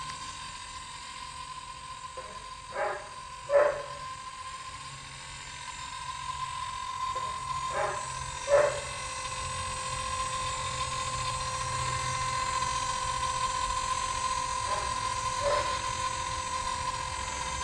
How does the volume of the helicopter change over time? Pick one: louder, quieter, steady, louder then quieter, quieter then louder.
louder.